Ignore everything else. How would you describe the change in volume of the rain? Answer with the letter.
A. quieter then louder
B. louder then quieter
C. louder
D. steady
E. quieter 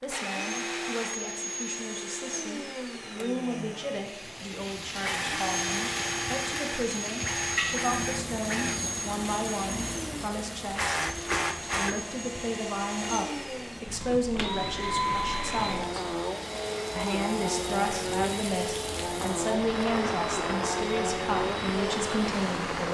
A.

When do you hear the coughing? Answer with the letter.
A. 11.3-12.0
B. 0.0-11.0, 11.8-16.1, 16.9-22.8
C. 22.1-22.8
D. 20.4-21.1
A.